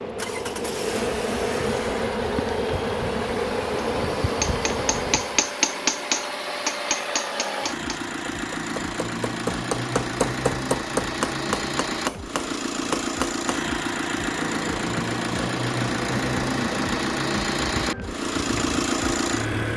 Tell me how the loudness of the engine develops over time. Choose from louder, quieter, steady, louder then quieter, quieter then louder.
louder.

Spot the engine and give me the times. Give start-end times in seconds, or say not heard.
0.0-19.7.